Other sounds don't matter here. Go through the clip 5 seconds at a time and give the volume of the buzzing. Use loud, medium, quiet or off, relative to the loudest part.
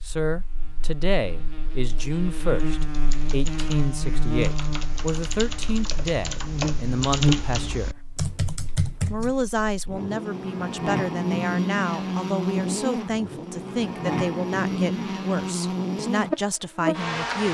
medium, loud, loud, loud.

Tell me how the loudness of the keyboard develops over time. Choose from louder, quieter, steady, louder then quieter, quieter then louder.
louder.